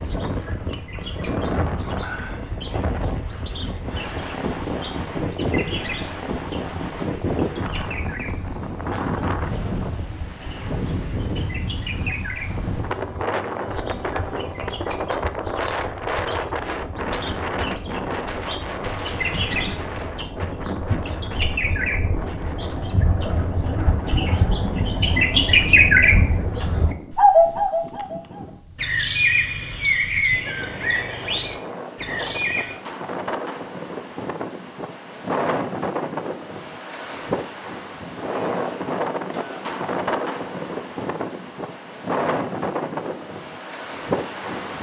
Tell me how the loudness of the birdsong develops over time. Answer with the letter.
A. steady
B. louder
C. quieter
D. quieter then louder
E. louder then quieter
B.